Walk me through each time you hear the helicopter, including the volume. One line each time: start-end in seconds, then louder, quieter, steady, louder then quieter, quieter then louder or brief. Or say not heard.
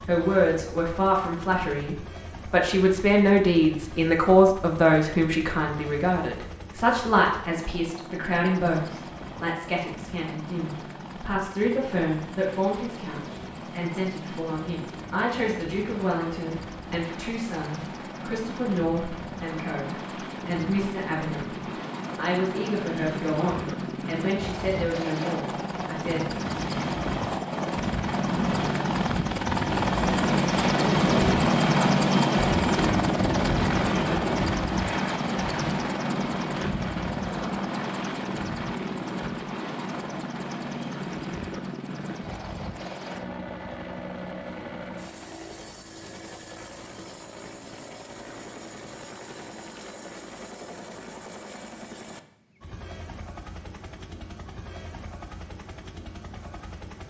0.0-57.0 louder then quieter.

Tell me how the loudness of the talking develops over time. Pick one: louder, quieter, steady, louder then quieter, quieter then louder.
quieter.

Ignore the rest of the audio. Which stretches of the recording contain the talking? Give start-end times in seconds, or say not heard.
0.1-26.3.